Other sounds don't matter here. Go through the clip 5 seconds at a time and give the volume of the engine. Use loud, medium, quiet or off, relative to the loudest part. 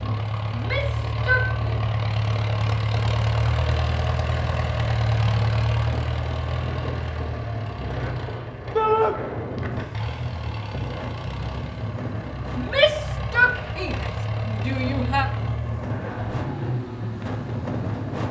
loud, loud, medium, medium.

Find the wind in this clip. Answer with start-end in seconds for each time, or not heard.
0.0-18.2.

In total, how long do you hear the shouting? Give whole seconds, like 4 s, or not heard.
4 s.